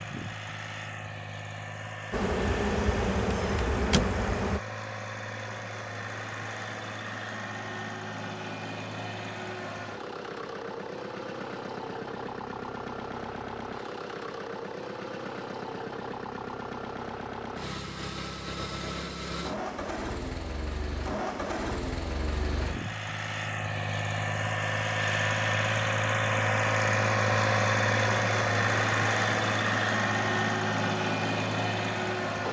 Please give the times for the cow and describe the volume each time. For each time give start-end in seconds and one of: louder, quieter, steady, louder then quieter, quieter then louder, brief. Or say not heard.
not heard.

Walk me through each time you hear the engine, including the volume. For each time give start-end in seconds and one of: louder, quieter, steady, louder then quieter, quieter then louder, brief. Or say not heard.
0.0-32.4 louder.